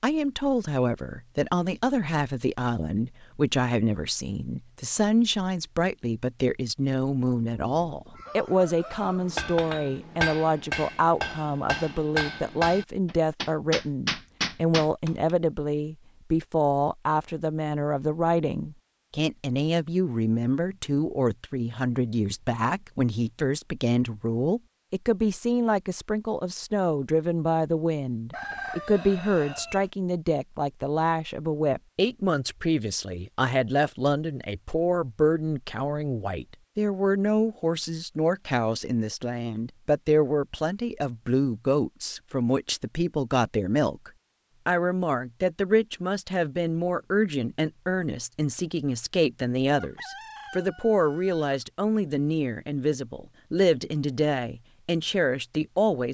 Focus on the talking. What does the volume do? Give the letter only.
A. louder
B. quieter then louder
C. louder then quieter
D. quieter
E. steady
E.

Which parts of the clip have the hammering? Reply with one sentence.
The hammering can be heard from 8.9 to 15.3 s.